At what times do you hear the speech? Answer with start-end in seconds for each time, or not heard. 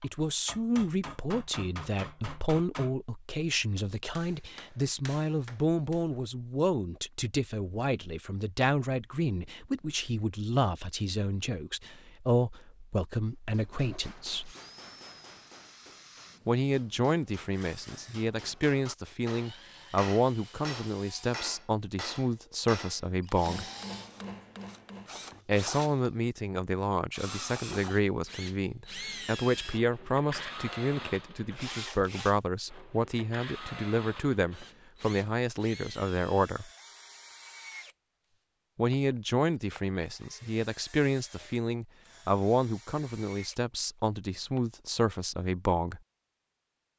0.0-14.5, 16.4-23.6, 25.4-36.7, 38.8-46.0.